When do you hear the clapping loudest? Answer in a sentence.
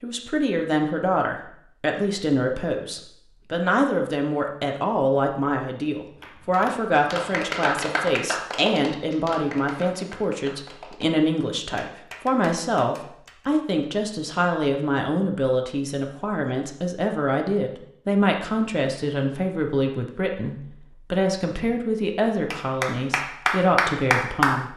The loudest moment of the clapping is at 24 seconds.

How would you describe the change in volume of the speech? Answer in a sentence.
The volume of the speech stays about the same.